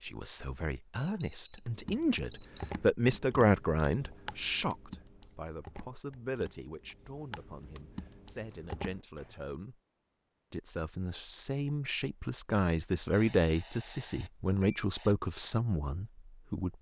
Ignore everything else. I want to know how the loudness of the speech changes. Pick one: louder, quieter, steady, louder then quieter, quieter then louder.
quieter then louder.